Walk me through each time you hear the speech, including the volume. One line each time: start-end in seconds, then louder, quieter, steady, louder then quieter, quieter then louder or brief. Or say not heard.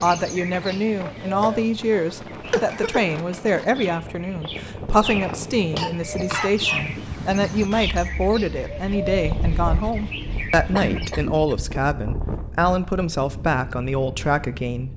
0.0-14.9 steady.